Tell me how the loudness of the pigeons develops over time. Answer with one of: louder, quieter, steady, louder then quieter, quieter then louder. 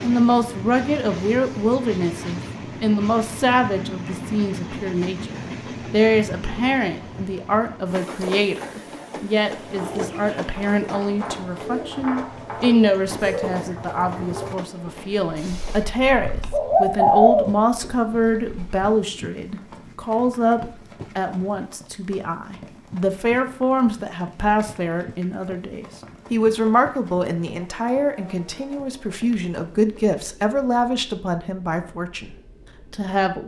louder.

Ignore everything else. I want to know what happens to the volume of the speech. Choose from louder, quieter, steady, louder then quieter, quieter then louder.
steady.